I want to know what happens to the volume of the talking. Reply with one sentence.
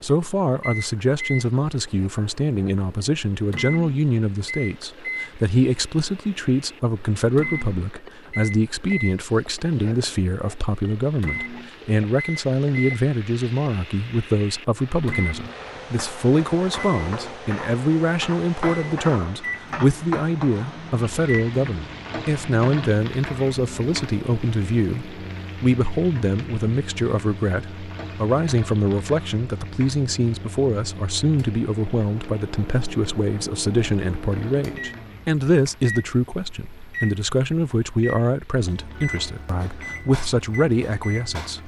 The volume of the talking stays about the same.